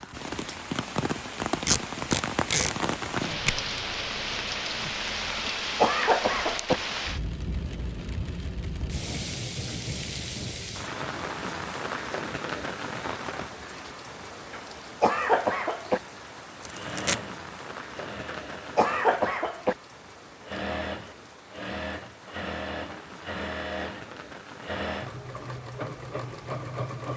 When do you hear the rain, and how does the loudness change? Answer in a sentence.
You can hear the rain from 0.0 to 27.1 s, getting quieter.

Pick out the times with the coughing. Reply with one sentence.
The coughing can be heard from 5.3 to 6.8 s, from 14.5 to 16.0 s and from 18.2 to 19.8 s.